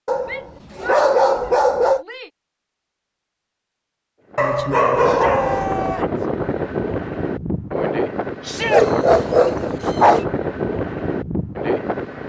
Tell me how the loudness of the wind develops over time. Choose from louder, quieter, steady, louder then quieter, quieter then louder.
steady.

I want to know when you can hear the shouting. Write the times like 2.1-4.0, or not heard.
0.2-2.3, 5.0-6.2, 8.4-8.8.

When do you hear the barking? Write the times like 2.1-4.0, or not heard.
0.1-2.0, 4.3-6.0, 8.6-10.2.